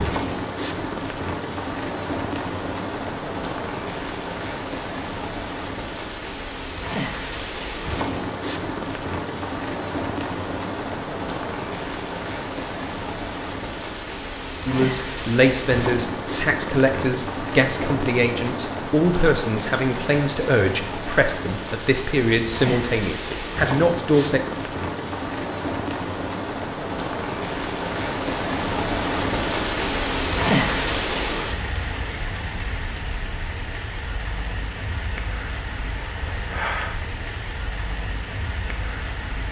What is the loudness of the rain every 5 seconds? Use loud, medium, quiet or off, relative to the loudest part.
loud, loud, loud, loud, loud, loud, loud, medium.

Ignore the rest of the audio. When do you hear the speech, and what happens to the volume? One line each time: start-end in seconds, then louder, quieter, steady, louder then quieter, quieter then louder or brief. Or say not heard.
14.7-24.4 steady.